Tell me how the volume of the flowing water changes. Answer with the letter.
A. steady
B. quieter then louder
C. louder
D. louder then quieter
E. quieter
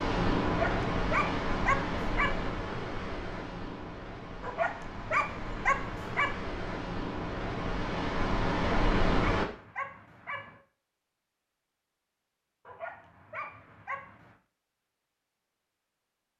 B.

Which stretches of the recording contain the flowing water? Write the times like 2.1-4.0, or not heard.
0.0-9.4.